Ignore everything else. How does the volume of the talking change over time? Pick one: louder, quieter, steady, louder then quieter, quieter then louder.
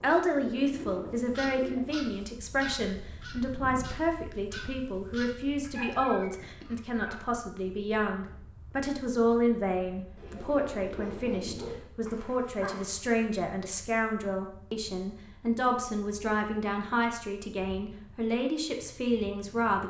steady.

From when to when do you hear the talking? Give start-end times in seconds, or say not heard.
0.0-19.8.